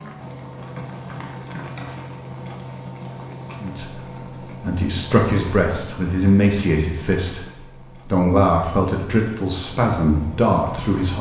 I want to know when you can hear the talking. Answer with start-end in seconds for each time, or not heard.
3.6-11.1.